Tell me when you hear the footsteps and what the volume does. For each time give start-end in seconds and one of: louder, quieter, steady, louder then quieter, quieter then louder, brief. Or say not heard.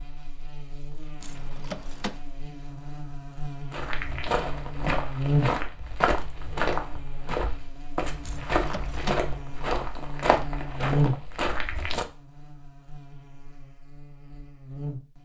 3.7-12.1 steady.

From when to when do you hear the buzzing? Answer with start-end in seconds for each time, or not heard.
0.0-15.1.